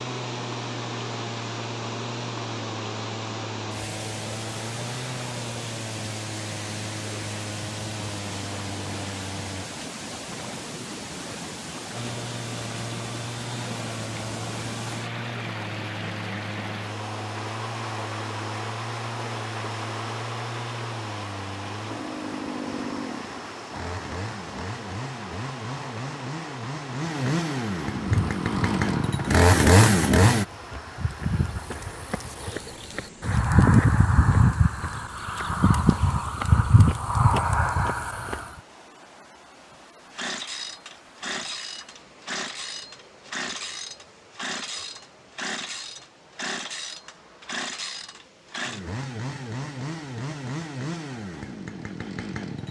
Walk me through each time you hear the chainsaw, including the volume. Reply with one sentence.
The chainsaw can be heard from 0.0 to 9.7 s, at a steady volume; from 11.9 to 30.4 s, getting louder; and from 40.1 to 52.6 s, at a steady volume.